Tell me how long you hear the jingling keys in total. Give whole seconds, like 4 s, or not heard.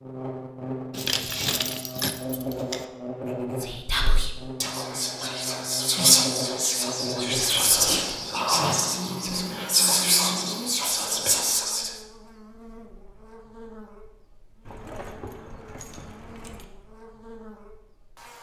5 s.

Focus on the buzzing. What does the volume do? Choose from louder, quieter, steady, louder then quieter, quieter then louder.
quieter.